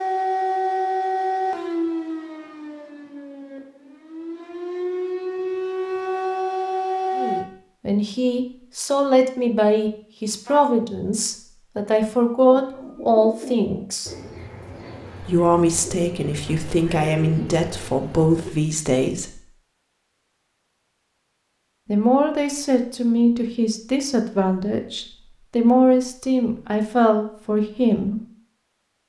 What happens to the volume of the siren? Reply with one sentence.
The volume of the siren goes down, then up.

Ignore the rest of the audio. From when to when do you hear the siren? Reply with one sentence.
You can hear the siren from 0.0 to 7.5 s.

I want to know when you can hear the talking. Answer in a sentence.
The talking can be heard from 7.2 to 14.1 s, from 15.2 to 19.4 s and from 21.9 to 28.2 s.